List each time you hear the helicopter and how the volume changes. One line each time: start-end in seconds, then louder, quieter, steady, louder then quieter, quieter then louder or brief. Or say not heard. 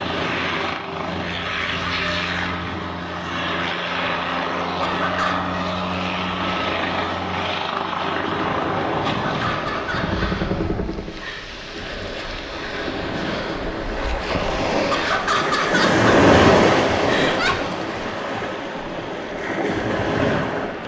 0.0-11.2 steady.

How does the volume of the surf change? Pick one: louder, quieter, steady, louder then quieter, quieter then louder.
louder then quieter.